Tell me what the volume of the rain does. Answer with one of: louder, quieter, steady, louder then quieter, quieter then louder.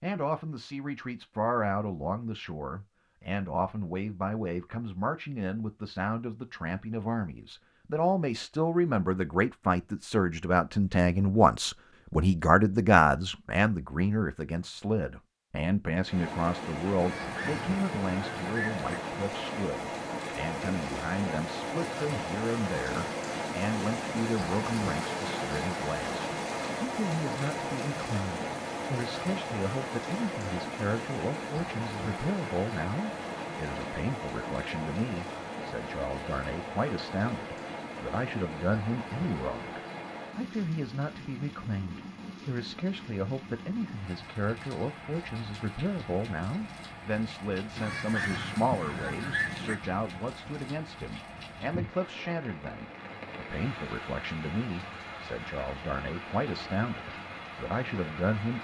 quieter.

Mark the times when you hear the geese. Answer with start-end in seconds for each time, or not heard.
16.9-18.9, 47.8-49.8.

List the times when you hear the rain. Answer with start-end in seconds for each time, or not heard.
16.0-58.5.